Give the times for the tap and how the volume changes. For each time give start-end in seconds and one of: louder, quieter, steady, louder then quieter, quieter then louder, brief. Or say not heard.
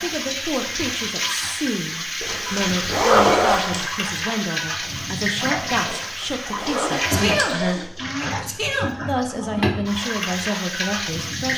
0.0-11.5 steady.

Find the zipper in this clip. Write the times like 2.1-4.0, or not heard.
2.2-3.6, 5.8-7.8.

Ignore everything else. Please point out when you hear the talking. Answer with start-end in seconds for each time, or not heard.
0.0-11.5.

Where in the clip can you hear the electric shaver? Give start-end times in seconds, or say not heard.
not heard.